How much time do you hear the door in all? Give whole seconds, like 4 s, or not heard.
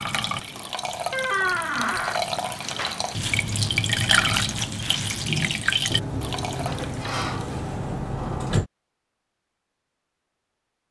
4 s.